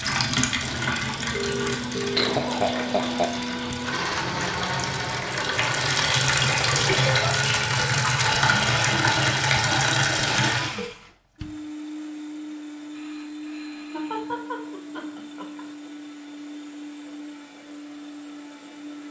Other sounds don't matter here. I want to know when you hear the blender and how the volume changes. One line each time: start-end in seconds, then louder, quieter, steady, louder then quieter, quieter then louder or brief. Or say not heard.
0.0-19.0 quieter.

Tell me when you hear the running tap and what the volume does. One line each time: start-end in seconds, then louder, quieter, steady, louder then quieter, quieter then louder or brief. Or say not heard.
0.0-10.8 quieter then louder.